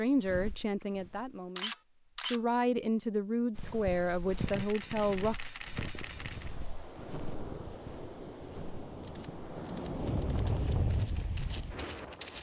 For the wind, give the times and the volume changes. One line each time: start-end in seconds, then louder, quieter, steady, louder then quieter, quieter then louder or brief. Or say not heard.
5.9-12.3 louder.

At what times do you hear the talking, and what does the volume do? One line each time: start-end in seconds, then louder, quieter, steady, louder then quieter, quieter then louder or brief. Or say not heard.
0.0-5.5 quieter then louder.